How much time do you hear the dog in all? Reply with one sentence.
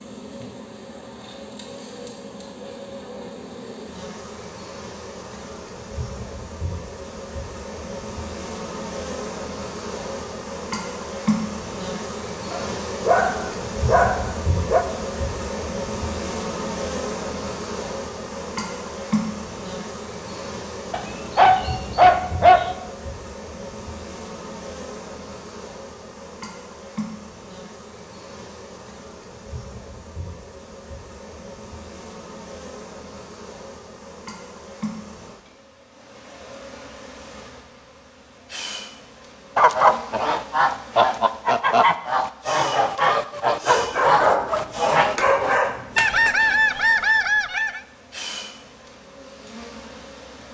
The dog can be heard for 7 seconds in total.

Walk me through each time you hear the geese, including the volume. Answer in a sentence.
You can hear the geese from 39.5 to 47.8 s, at a steady volume.